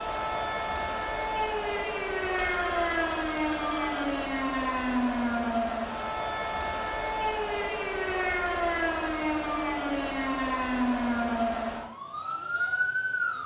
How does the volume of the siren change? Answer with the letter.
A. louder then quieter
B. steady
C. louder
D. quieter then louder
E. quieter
B.